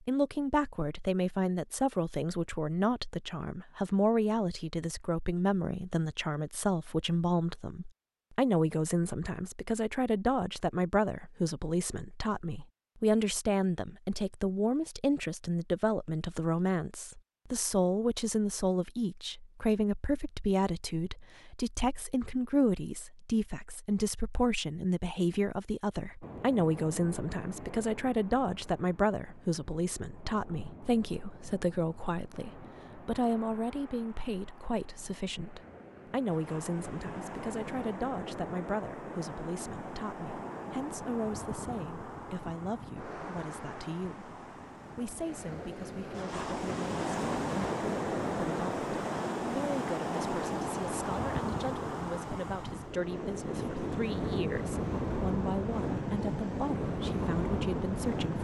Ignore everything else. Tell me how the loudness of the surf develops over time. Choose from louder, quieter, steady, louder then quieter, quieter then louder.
louder.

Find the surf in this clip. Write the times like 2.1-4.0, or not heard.
26.2-58.3.